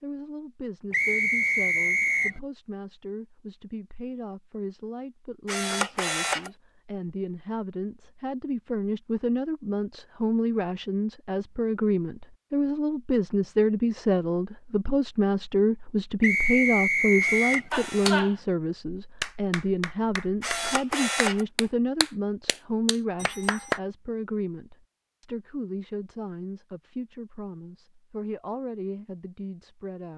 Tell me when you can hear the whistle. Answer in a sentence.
You can hear the whistle from 0.9 to 2.4 s and from 16.2 to 17.6 s.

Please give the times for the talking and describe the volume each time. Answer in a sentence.
You can hear the talking from 0.0 to 30.1 s, getting louder then quieter.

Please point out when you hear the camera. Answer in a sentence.
You can hear the camera from 5.5 to 6.5 s, from 17.2 to 18.2 s and from 20.4 to 21.4 s.